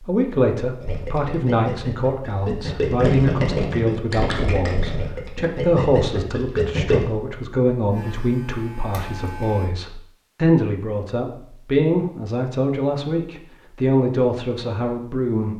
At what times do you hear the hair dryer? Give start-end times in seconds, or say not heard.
not heard.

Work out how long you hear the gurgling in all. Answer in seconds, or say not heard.
6 s.